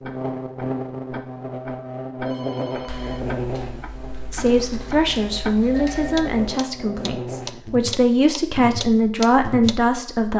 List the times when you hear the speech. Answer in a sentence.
You can hear the speech from 4.3 to 10.3 s.